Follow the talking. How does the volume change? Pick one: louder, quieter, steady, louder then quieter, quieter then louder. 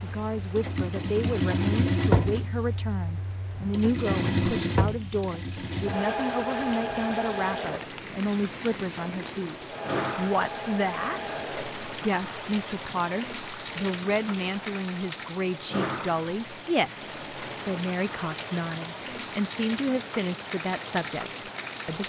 steady.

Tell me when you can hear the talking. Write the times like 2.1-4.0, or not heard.
0.0-22.0.